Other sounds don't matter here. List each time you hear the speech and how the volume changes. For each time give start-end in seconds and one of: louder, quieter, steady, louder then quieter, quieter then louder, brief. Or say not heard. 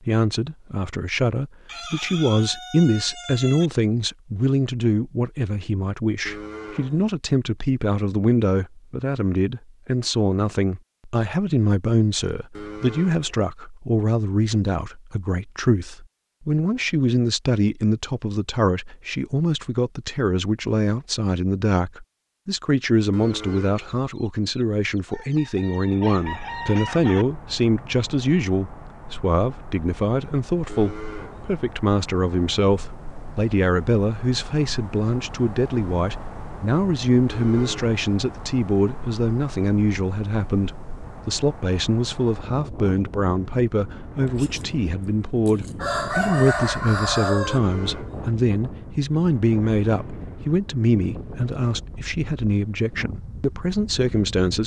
0.1-54.6 steady.